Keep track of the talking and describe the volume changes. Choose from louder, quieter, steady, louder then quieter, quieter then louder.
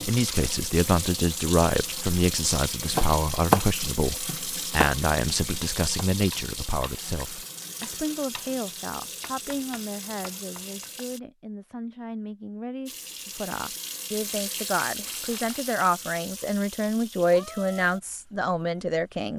quieter then louder.